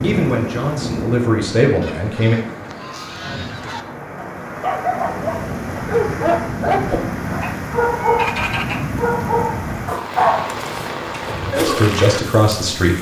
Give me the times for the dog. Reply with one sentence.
You can hear the dog from 4.2 to 11.9 s.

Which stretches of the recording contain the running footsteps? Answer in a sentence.
The running footsteps can't be heard in this clip.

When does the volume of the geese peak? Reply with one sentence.
The volume of the geese peaks at 8 seconds.